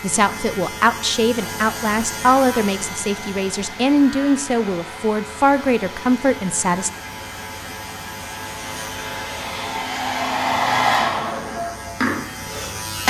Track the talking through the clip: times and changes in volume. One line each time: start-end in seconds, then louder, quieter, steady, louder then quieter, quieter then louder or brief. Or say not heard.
0.0-6.9 steady.